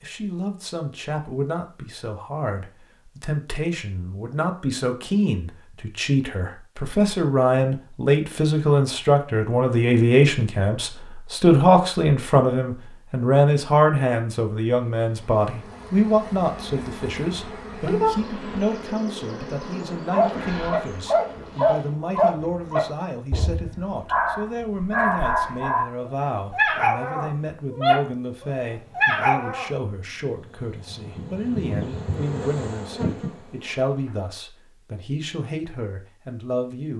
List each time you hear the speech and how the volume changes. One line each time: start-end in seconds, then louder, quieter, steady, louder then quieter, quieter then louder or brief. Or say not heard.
0.0-36.9 louder then quieter.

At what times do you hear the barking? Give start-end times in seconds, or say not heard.
20.1-29.7.